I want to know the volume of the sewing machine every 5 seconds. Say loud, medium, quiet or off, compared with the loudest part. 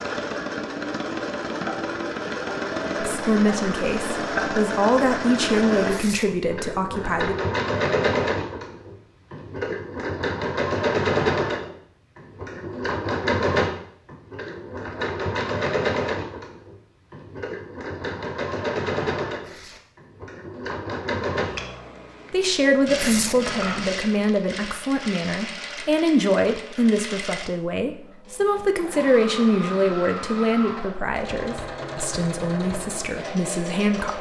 loud, loud, loud, loud, medium, medium, medium.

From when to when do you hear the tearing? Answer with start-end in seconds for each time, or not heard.
5.8-6.2, 19.4-19.8, 22.9-23.4.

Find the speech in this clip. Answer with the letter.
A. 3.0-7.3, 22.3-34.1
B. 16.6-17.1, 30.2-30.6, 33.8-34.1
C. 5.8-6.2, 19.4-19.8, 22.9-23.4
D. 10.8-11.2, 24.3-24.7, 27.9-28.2
A.